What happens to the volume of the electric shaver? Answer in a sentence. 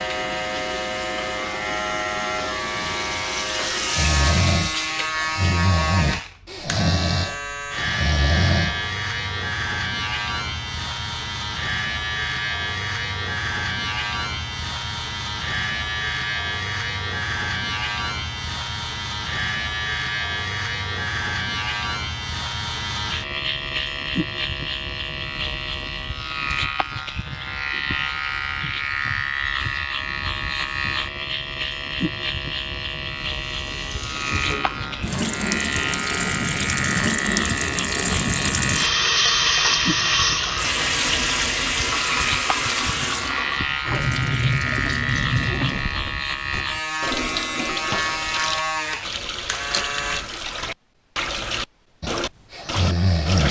The volume of the electric shaver stays about the same.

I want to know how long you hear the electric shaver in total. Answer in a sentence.
You can hear the electric shaver for 50 seconds altogether.